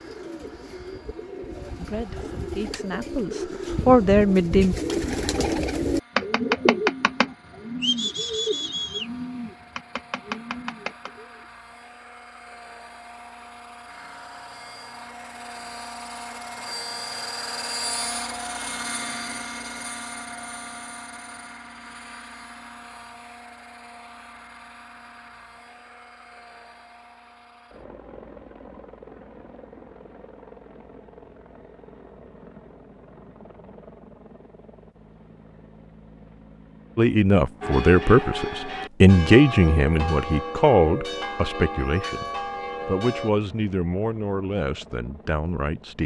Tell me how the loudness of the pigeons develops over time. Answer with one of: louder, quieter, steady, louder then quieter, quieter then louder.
louder then quieter.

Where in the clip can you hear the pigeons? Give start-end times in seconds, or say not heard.
0.0-11.4.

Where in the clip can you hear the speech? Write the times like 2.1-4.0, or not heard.
1.8-4.8, 37.0-42.2, 42.9-46.0.